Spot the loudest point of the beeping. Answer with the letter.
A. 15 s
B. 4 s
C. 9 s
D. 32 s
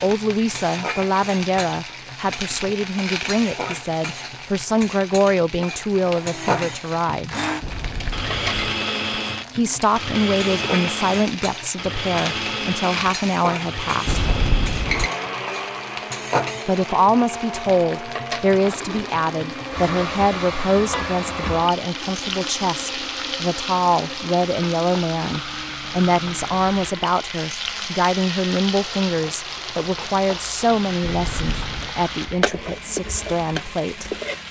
A.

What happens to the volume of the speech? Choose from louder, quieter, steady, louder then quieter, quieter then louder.
steady.